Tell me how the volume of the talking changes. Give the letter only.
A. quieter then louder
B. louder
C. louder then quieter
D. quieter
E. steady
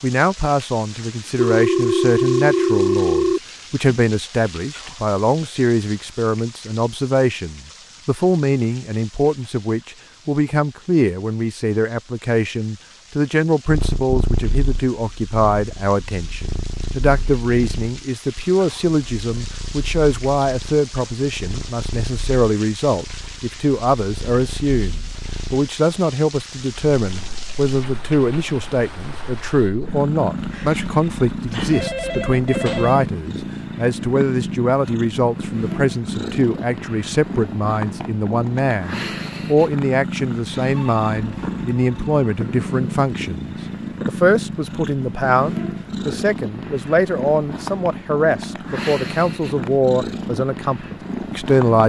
E.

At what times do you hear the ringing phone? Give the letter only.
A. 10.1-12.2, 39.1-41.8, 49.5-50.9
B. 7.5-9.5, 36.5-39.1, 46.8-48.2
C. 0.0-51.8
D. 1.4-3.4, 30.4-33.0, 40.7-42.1
D.